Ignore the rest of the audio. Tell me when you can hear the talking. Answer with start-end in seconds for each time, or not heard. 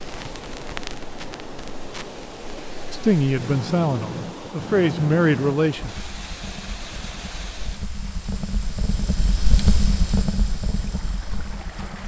2.9-5.9.